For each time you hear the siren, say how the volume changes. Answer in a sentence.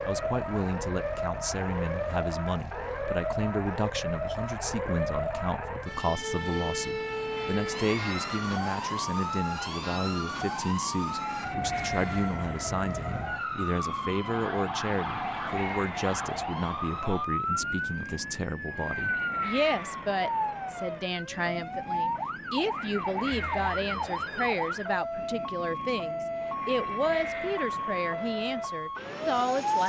The siren can be heard from 0.0 to 29.8 s, at a steady volume.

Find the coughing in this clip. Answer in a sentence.
The coughing can't be heard in this clip.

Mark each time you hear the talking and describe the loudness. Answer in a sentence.
The talking can be heard from 0.1 to 29.8 s, at a steady volume.